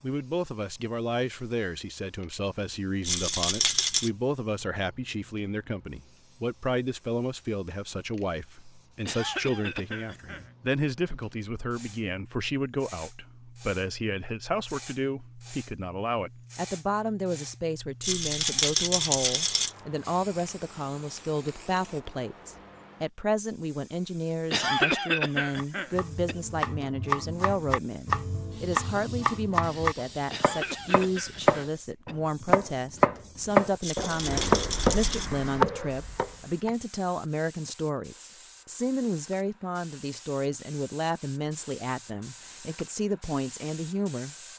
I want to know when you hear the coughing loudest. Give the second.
25 s.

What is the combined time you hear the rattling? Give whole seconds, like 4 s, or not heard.
4 s.